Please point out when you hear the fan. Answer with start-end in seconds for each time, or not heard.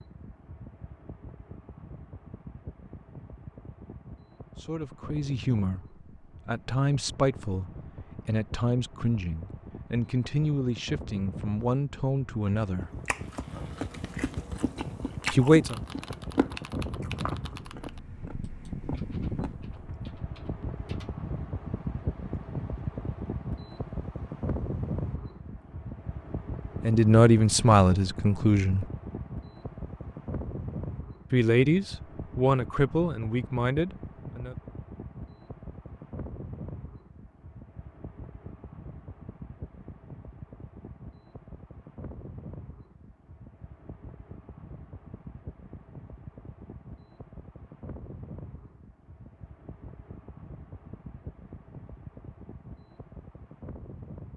0.0-54.3.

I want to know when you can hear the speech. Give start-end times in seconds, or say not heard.
4.6-12.9, 15.3-15.8, 26.8-28.9, 31.3-34.5.